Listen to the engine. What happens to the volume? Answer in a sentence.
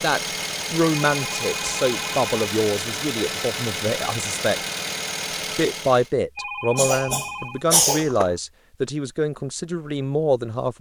The volume of the engine stays about the same.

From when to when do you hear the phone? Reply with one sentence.
You can hear the phone from 1.1 to 2.2 s and from 6.3 to 7.7 s.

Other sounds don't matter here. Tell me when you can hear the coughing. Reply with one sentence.
The coughing can be heard from 6.8 to 8.3 s.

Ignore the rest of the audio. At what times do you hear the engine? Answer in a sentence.
You can hear the engine from 0.0 to 6.1 s.